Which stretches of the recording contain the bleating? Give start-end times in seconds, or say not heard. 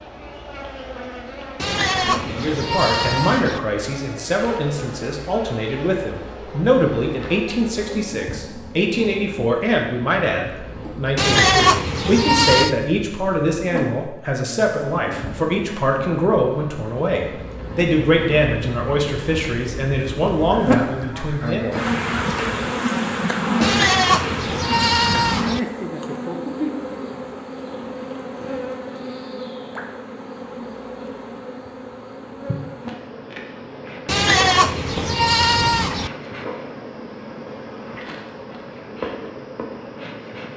1.6-3.6, 11.2-12.8, 23.6-25.6, 34.0-36.1.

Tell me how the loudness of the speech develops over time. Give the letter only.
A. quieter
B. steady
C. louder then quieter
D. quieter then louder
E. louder
B.